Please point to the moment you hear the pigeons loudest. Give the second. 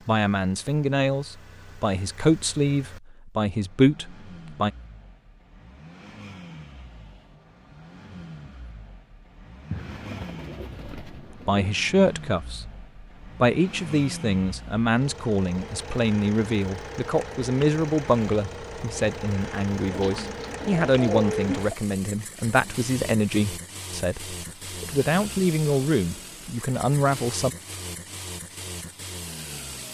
21 s.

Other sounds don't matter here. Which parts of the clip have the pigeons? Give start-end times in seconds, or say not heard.
9.7-11.7, 19.9-21.8.